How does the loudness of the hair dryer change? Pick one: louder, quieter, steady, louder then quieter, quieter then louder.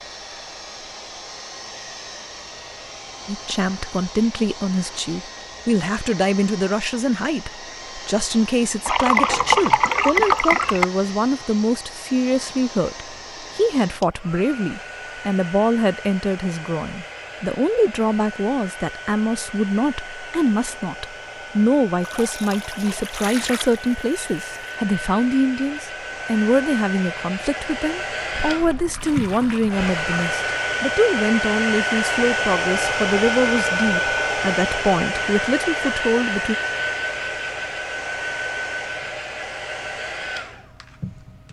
louder.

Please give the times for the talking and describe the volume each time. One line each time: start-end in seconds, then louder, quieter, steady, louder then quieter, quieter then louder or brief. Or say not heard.
3.2-36.5 steady.